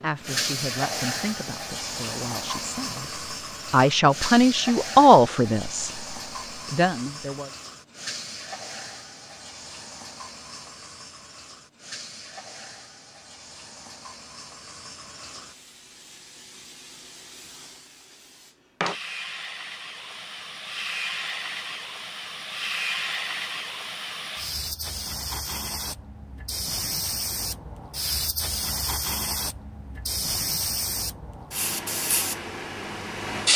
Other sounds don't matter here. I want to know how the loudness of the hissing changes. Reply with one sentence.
The volume of the hissing goes down, then up.